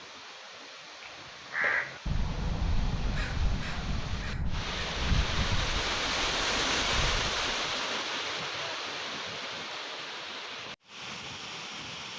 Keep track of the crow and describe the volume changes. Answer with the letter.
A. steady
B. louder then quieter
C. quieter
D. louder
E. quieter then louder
C.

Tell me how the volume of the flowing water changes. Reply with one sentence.
The loudness of the flowing water goes up, then down.